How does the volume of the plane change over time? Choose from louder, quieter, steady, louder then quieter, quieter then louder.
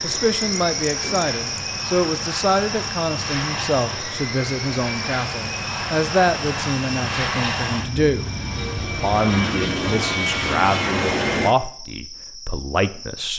louder.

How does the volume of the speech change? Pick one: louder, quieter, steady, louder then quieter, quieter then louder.
steady.